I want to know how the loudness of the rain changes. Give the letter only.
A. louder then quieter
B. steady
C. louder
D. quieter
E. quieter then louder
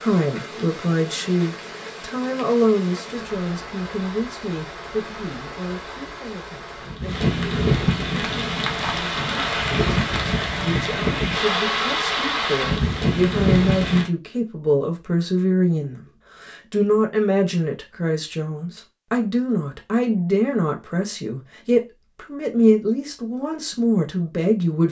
C.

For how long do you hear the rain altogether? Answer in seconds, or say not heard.
14 s.